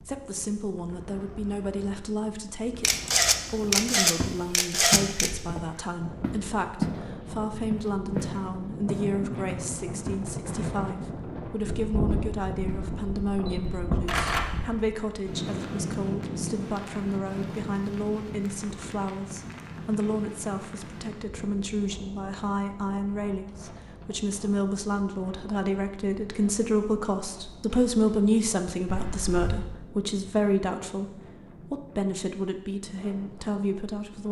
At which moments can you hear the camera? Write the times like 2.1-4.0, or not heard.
2.8-5.3, 13.3-14.4, 28.9-29.6.